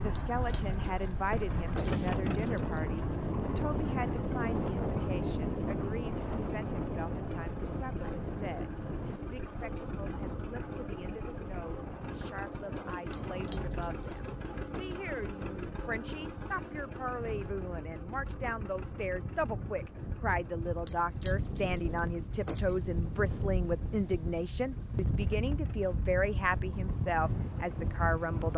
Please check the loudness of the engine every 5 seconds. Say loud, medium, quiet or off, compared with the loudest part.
loud, loud, loud, loud, quiet, medium.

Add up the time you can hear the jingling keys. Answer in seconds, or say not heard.
6 s.